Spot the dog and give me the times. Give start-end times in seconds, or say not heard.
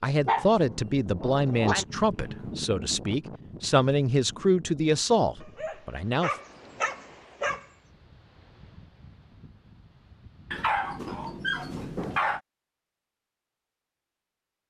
0.2-1.9, 5.4-7.7, 10.5-12.4.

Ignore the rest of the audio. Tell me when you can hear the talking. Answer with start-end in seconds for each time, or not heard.
0.0-6.3.